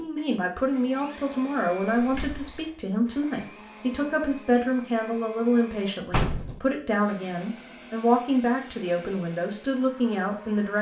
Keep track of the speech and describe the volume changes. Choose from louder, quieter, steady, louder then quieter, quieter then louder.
steady.